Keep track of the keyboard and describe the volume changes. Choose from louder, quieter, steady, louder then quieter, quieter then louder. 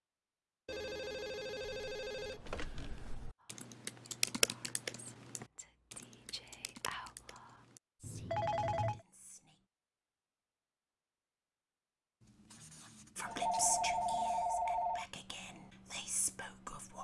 louder then quieter.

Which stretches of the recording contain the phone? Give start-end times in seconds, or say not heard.
0.7-2.7, 8.0-9.1, 13.2-15.1.